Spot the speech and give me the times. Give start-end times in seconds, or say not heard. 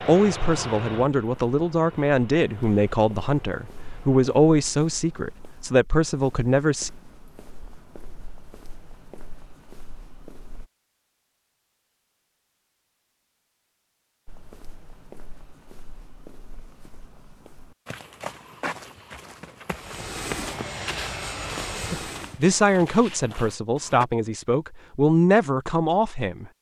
0.0-6.9, 21.9-26.5.